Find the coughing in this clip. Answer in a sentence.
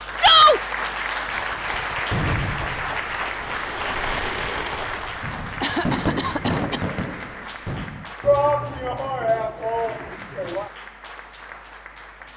The coughing can be heard from 5.6 to 6.8 s.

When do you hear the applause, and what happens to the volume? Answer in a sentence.
The applause can be heard from 0.0 to 12.3 s, getting quieter.